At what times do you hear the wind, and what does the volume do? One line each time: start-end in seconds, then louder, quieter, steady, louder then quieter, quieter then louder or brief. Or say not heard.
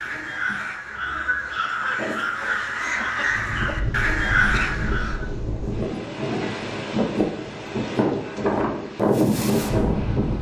3.2-10.3 louder.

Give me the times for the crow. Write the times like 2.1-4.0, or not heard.
0.0-5.2.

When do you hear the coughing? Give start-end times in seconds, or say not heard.
4.5-5.2.